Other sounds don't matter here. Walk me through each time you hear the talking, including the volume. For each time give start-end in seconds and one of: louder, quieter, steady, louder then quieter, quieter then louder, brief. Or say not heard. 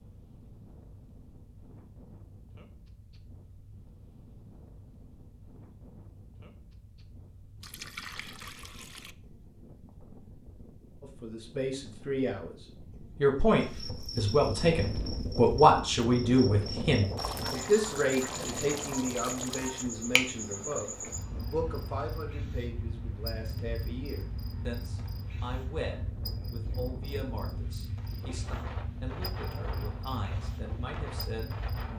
11.0-12.6 brief
13.2-31.9 quieter.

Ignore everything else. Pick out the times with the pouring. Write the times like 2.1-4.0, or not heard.
7.6-9.2, 17.1-19.9.